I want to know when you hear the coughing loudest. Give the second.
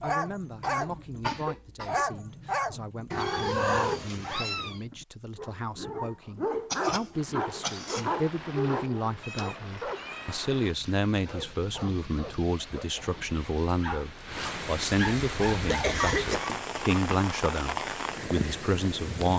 16 s.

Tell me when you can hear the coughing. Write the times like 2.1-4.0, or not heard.
0.6-2.0, 6.7-8.1, 15.7-16.6.